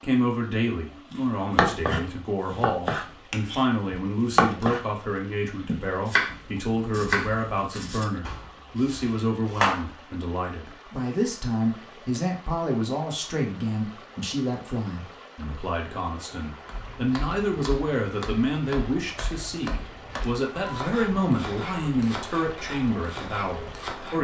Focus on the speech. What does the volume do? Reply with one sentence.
The volume of the speech stays about the same.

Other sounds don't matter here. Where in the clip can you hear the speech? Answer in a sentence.
You can hear the speech from 0.0 to 24.1 s.